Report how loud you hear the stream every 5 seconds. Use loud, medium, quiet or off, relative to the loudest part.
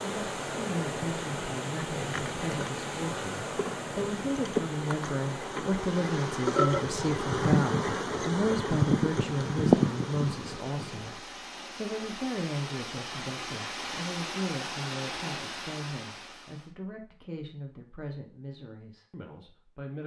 loud, medium, loud, loud.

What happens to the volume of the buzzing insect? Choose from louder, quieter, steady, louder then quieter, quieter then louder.
louder.